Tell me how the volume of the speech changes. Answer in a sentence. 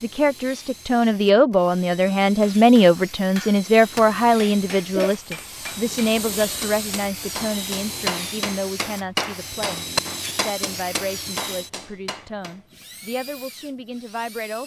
The loudness of the speech goes down.